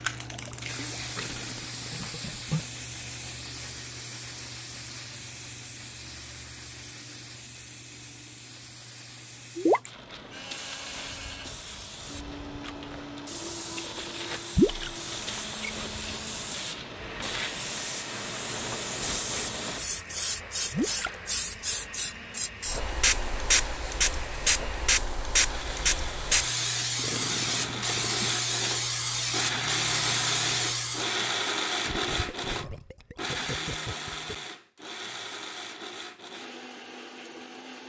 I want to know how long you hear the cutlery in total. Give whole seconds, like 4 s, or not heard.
not heard.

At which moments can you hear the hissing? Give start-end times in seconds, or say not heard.
0.0-31.3.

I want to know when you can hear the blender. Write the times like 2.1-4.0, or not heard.
10.3-37.8.